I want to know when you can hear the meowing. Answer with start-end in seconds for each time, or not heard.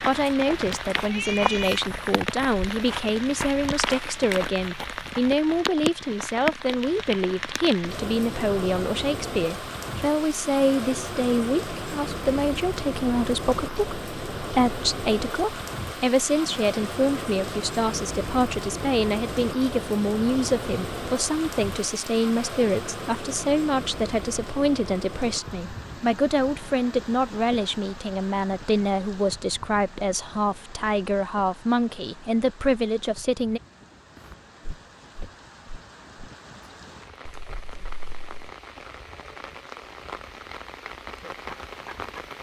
0.9-1.8, 37.2-38.5.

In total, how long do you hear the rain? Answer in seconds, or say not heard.
42 s.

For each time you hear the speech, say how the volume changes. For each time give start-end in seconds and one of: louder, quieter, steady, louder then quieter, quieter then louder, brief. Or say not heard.
0.0-33.6 steady.